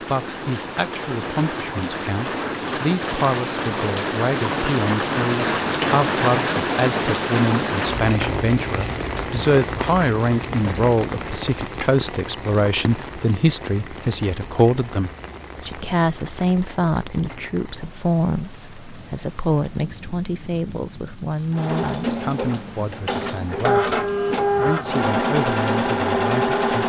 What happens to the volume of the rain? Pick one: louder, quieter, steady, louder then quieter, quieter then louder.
quieter.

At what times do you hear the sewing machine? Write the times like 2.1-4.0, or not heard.
21.5-26.8.